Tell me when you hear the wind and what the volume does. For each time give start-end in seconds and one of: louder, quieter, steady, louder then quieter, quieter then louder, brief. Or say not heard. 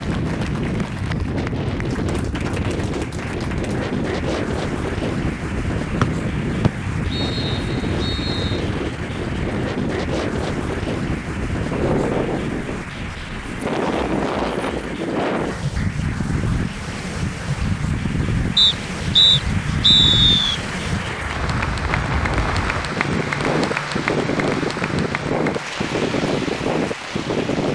0.0-27.6 steady.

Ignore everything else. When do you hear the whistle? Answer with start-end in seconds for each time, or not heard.
6.0-8.6, 18.6-20.6.